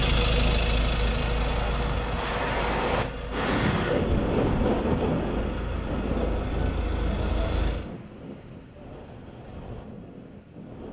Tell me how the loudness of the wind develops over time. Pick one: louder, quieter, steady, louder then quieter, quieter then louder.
louder then quieter.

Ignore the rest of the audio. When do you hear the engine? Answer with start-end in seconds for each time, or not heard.
0.0-7.9.